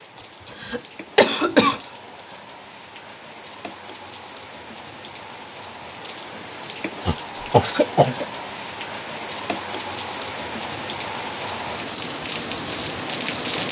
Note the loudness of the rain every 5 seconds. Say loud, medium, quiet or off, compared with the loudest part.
quiet, medium, loud.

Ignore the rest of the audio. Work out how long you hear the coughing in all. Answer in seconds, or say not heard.
3 s.